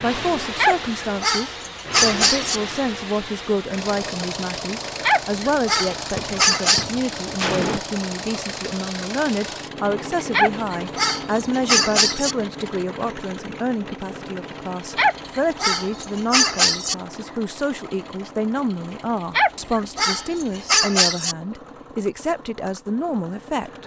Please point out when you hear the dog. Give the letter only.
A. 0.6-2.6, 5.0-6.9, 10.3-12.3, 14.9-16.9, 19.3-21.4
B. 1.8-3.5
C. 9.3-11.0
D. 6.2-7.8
A.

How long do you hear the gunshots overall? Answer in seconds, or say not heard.
2 s.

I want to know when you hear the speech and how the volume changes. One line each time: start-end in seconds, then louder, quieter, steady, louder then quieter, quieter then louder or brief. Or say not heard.
0.0-23.8 steady.